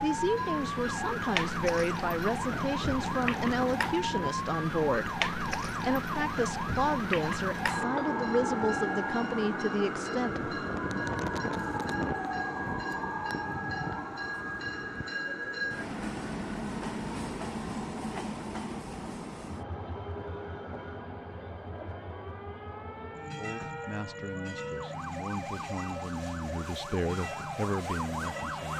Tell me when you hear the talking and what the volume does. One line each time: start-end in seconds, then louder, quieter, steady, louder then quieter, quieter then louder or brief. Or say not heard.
0.0-10.5 steady
23.4-28.7 louder.